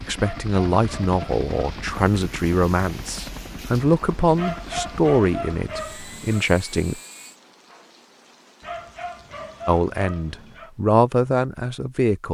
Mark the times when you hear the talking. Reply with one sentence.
The talking can be heard from 0.0 to 7.0 s and from 9.7 to 12.2 s.